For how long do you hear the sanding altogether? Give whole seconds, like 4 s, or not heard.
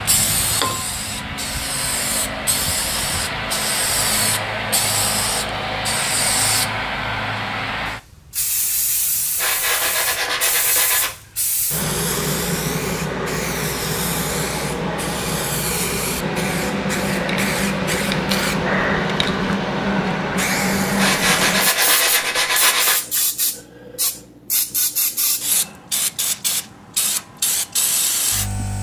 4 s.